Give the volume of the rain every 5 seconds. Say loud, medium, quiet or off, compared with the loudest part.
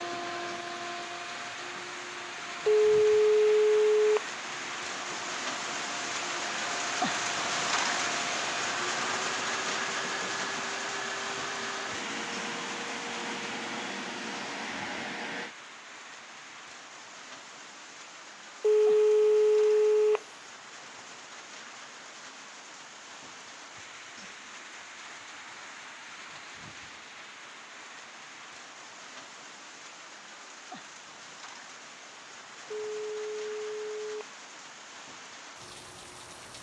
medium, loud, medium, quiet, quiet, quiet, quiet, quiet.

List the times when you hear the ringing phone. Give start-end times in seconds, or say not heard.
2.6-4.2, 18.6-20.2, 33.0-34.2.